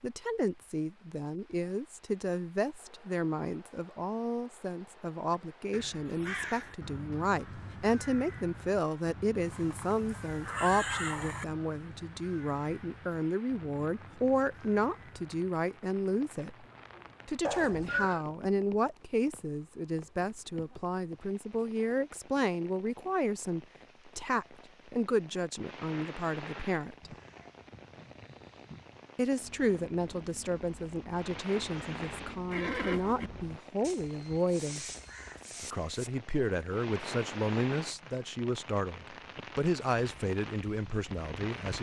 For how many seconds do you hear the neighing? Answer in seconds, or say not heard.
4 s.